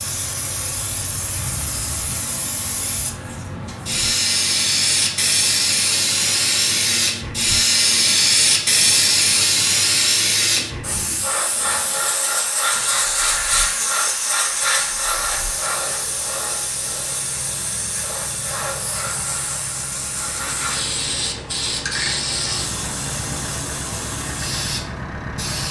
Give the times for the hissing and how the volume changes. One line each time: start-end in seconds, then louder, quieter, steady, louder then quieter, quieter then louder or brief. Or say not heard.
0.0-25.6 louder then quieter.